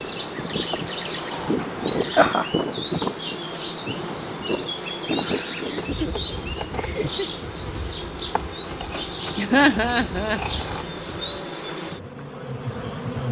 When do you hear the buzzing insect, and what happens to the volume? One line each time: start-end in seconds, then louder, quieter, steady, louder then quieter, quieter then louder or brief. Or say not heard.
0.0-13.2 steady.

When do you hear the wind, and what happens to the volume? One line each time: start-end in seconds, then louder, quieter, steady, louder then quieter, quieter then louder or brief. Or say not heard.
0.0-11.3 quieter.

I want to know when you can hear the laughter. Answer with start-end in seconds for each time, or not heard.
1.6-2.5, 5.7-7.3, 9.3-10.4.